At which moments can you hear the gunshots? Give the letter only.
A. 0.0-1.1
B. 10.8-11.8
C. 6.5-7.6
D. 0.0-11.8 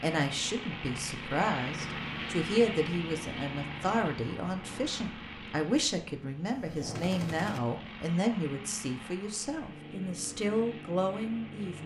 C.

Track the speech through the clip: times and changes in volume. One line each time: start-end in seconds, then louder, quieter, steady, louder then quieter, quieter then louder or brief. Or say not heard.
0.0-11.8 steady.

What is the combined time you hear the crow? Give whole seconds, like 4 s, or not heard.
not heard.